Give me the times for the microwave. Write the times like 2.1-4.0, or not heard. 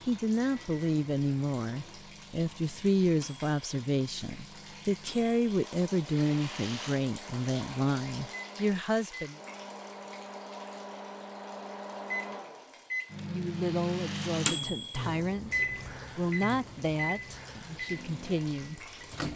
0.0-19.3.